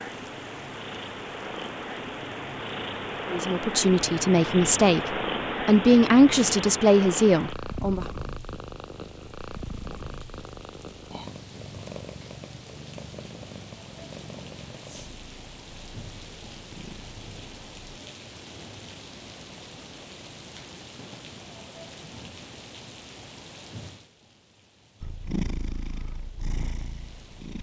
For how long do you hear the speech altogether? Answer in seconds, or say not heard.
5 s.